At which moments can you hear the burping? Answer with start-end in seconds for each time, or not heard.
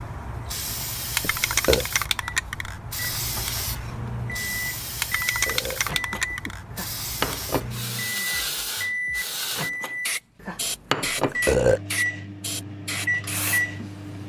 1.2-1.9, 5.0-6.5, 11.0-11.8.